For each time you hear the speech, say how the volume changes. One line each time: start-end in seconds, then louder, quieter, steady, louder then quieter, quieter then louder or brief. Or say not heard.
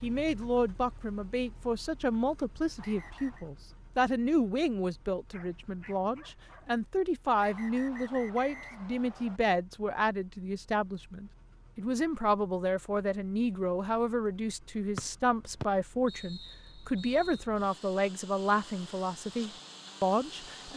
0.0-20.7 steady.